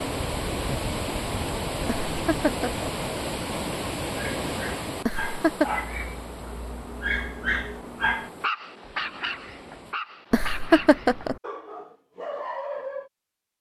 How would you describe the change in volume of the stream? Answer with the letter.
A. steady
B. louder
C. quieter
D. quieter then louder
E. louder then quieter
C.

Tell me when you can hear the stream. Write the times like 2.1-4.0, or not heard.
0.0-9.9.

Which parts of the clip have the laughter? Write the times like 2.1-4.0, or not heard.
2.1-2.9, 5.0-5.7, 10.3-11.3.